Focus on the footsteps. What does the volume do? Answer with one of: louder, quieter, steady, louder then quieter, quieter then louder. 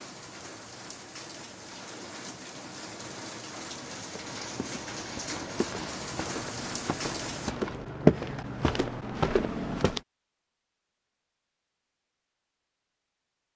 louder then quieter.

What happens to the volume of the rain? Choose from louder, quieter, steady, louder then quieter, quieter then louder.
louder.